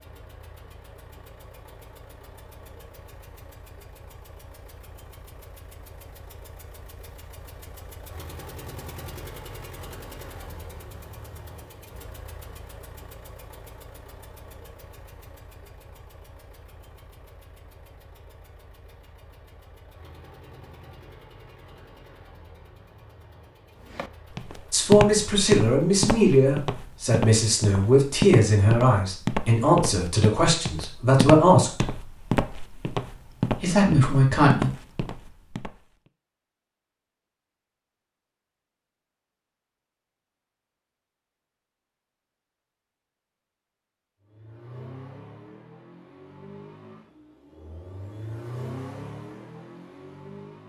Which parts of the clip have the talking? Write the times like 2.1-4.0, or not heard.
24.7-31.9, 33.5-34.7.